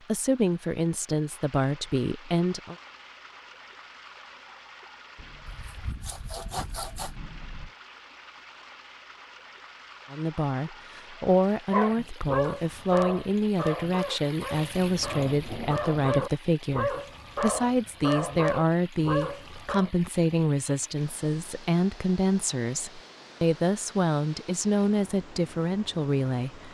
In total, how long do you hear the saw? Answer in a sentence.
The saw can be heard for 2 seconds in total.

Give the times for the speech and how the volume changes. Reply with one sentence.
The speech can be heard briefly from 0.1 to 2.8 s; and from 10.1 to 26.6 s, at a steady volume.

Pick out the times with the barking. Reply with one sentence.
You can hear the barking from 11.7 to 19.9 s.